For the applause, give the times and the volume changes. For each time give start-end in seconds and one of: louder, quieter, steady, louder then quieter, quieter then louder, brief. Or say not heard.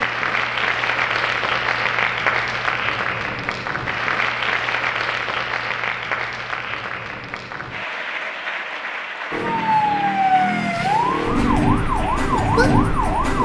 0.0-13.4 quieter.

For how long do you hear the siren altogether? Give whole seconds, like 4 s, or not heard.
4 s.